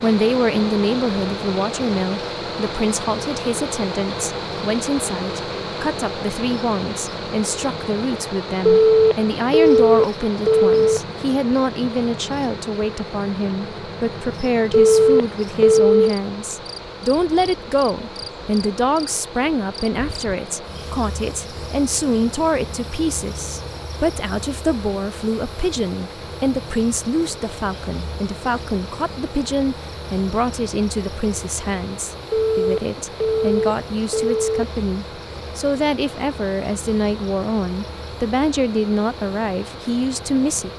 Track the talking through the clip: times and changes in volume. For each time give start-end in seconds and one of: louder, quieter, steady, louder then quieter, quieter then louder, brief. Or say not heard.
0.0-40.7 steady.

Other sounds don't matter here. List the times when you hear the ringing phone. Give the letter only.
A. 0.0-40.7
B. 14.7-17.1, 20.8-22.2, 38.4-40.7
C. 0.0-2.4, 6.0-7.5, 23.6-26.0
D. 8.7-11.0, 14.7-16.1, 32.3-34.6
D.